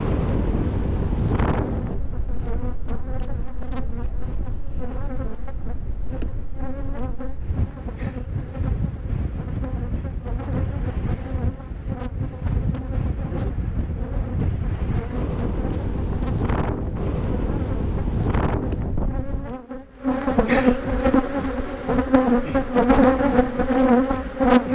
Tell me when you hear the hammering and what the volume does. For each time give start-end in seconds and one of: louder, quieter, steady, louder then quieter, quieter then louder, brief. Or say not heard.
not heard.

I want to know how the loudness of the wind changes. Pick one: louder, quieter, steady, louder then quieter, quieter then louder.
quieter then louder.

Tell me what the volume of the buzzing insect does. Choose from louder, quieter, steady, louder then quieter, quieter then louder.
louder.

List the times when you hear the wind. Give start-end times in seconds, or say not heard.
0.0-19.6.